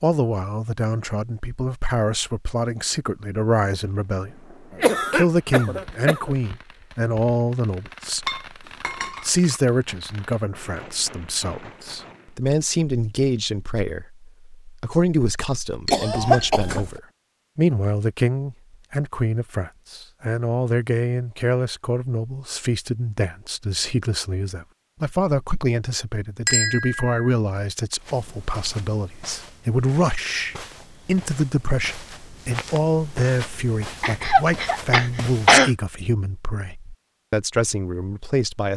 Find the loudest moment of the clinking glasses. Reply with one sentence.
The volume of the clinking glasses peaks at 27 seconds.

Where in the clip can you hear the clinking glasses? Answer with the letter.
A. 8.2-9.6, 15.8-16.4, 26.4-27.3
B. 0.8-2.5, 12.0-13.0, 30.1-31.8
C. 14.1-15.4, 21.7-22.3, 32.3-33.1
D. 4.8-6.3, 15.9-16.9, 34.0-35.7
A.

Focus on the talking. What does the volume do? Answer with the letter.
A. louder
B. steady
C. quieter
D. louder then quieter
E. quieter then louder
B.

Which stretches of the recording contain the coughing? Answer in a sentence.
The coughing can be heard from 4.8 to 6.3 s, from 15.9 to 16.9 s and from 34.0 to 35.7 s.